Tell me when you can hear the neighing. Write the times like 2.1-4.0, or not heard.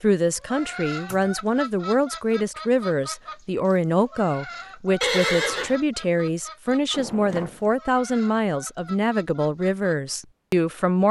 5.0-5.8.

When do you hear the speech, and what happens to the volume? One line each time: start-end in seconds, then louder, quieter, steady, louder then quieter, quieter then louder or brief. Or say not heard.
0.0-11.0 steady.